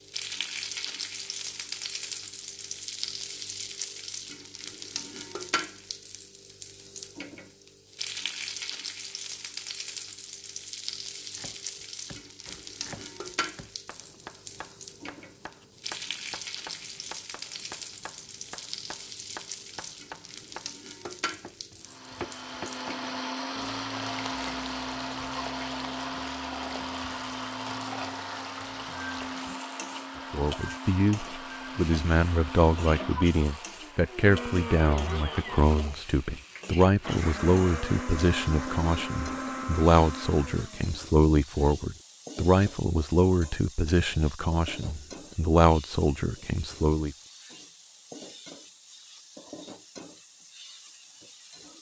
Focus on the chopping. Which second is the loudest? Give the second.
22 s.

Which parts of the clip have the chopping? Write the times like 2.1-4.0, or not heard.
11.3-23.3.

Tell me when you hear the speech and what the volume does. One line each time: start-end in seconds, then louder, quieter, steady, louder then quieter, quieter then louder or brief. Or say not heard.
30.3-47.1 steady.